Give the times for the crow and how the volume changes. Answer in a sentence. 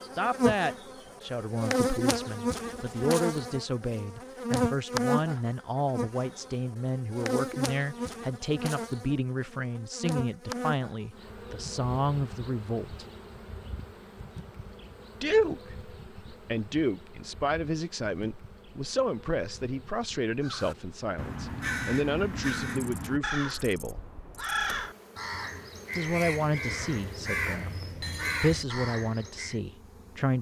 You can hear the crow from 20.4 to 29.6 s, at a steady volume.